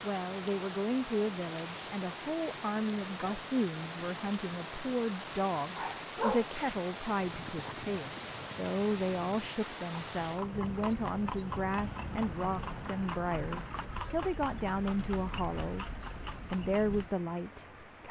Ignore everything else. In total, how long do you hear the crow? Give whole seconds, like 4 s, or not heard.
not heard.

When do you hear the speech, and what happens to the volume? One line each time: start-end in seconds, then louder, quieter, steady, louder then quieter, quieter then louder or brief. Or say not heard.
0.0-18.0 steady.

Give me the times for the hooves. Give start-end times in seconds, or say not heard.
7.2-17.1.